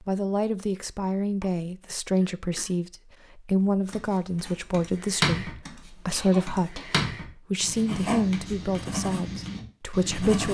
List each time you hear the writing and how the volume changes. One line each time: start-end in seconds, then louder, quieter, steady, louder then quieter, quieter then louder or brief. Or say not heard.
3.9-10.4 quieter then louder.